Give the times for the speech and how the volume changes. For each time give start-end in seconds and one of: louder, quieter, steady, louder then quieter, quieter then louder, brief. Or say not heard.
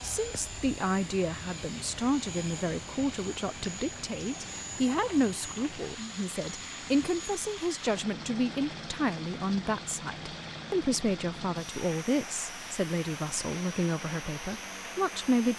0.0-15.5 steady.